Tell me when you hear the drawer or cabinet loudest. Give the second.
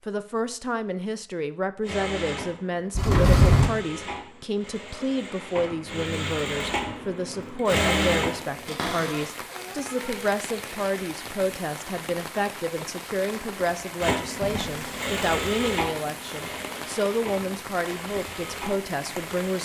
3 s.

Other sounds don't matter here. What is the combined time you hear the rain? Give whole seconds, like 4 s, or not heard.
12 s.